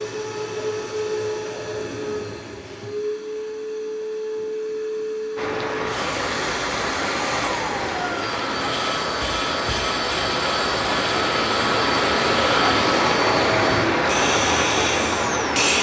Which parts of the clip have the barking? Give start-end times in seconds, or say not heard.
not heard.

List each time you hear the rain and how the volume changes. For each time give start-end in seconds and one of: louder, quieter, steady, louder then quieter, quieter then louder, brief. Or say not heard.
5.3-15.7 louder.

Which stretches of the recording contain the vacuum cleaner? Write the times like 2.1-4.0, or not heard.
0.0-15.7.